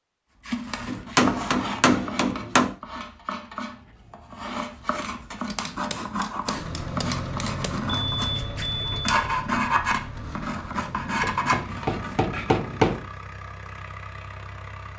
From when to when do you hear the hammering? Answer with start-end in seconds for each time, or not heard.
0.8-2.8, 5.5-7.8, 11.2-13.1.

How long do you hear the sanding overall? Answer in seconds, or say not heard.
12 s.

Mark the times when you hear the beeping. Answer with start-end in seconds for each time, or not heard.
8.0-9.3.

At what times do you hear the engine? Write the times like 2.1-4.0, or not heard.
6.5-14.9.